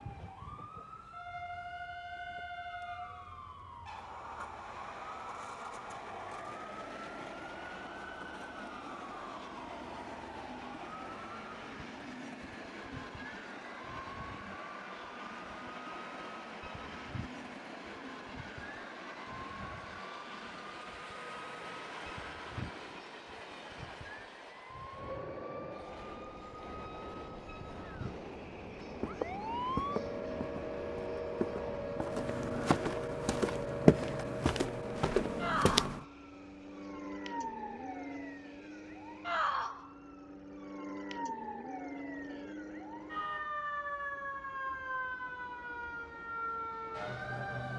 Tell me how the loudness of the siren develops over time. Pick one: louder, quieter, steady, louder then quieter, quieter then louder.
louder.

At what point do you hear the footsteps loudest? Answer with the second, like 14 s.
34 s.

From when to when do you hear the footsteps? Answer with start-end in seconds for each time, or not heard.
28.9-36.0.